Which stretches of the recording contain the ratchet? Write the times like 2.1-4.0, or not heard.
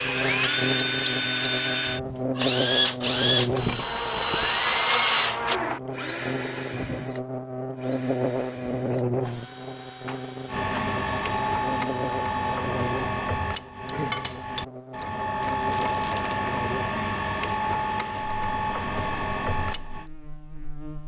10.4-20.1.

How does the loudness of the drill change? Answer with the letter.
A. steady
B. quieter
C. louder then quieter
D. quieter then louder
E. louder
B.